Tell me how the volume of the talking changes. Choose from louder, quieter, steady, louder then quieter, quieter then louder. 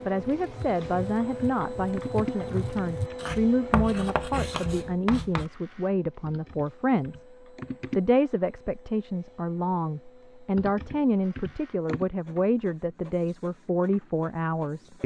steady.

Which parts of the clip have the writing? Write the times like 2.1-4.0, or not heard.
0.1-5.5.